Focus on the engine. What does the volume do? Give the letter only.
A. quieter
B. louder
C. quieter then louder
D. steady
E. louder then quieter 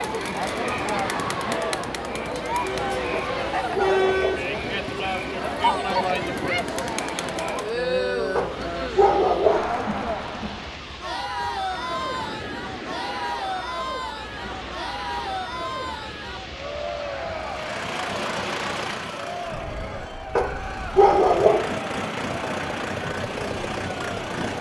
C.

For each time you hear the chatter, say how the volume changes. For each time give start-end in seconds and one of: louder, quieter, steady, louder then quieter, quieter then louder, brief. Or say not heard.
0.0-24.5 quieter.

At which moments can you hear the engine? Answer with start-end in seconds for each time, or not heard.
17.4-24.5.